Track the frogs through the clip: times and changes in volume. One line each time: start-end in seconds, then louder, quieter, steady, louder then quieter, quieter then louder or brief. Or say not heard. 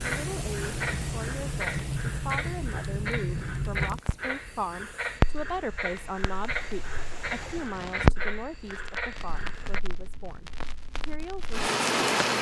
0.0-9.8 steady.